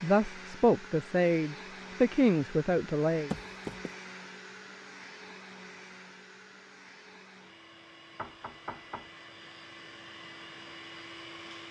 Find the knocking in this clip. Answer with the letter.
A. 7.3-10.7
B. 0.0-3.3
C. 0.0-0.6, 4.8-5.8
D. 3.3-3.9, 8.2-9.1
D.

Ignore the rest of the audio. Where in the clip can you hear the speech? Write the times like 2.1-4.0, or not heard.
0.0-3.3.